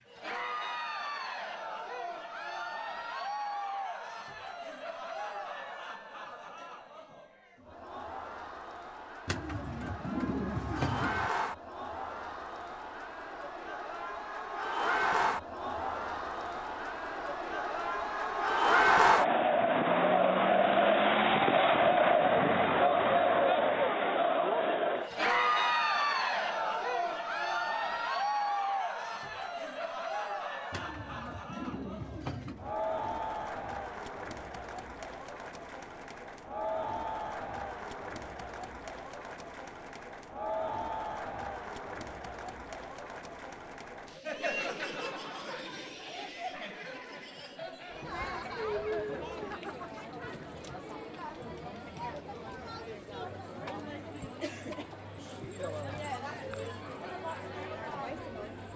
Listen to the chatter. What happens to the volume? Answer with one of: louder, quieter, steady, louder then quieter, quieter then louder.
louder then quieter.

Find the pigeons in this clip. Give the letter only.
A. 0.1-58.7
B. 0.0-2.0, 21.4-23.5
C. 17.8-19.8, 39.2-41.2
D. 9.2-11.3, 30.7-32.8
D.